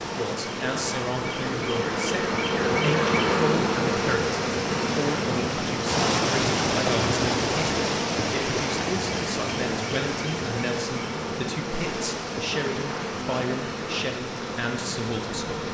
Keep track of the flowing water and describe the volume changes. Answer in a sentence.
The loudness of the flowing water goes up, then down.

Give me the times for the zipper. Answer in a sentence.
You can't hear the zipper here.